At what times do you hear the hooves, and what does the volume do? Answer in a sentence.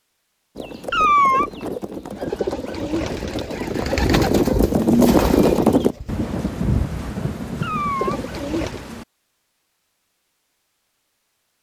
The hooves can be heard from 0.6 to 6.0 s, getting louder.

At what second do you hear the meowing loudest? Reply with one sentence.
The volume of the meowing peaks at 1 second.